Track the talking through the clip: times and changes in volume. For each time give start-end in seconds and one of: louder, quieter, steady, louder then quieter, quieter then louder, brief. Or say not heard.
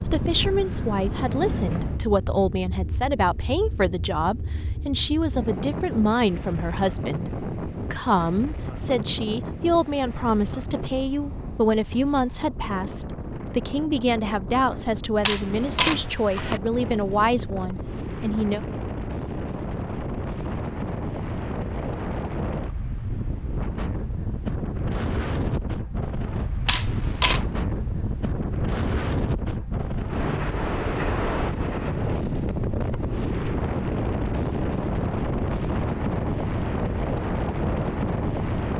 0.0-18.6 steady.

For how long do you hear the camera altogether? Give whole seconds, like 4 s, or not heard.
2 s.